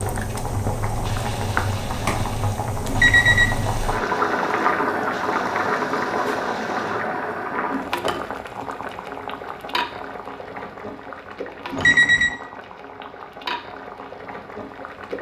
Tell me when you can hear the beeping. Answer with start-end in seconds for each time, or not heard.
2.9-3.6, 11.7-12.3.